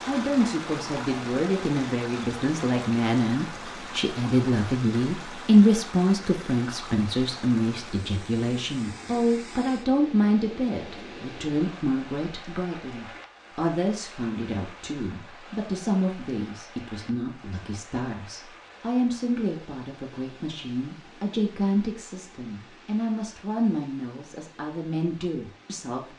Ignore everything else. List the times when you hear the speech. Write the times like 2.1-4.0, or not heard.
0.1-26.1.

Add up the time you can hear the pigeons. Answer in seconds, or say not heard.
not heard.